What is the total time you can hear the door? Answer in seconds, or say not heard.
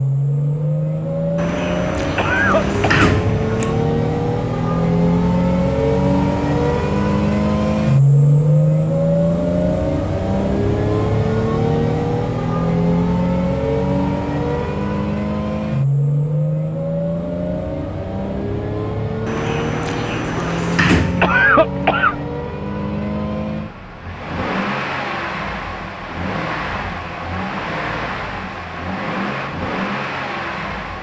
5 s.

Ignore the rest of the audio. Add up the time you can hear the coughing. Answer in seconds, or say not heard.
2 s.